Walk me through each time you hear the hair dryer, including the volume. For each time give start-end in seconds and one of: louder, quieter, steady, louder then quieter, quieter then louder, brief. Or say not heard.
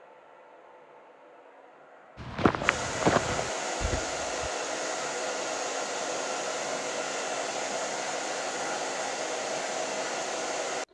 0.0-10.9 louder.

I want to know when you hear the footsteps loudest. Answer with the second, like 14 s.
3 s.